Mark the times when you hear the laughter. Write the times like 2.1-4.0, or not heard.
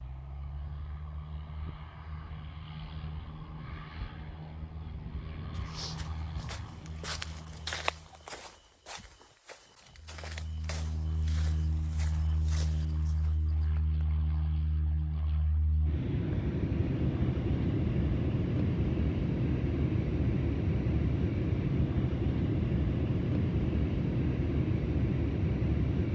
not heard.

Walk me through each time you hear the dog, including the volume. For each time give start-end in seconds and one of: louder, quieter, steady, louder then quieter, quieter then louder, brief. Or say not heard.
not heard.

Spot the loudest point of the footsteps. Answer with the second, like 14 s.
8 s.